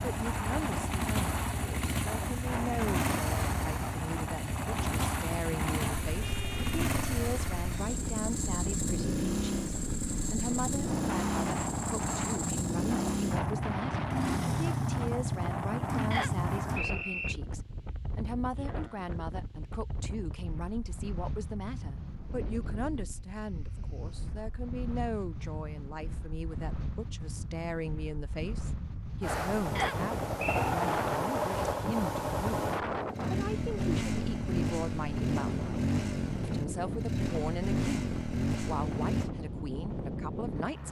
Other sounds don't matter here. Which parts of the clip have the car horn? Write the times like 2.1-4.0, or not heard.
6.2-6.8.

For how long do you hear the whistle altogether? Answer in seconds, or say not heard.
2 s.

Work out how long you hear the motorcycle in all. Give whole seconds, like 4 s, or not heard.
27 s.